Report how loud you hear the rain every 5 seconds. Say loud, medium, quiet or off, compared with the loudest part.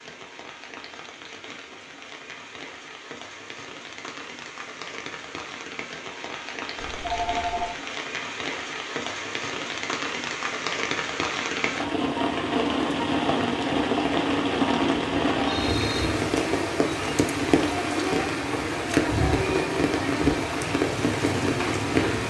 quiet, medium, loud, loud, loud.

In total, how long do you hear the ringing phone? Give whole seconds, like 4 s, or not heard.
2 s.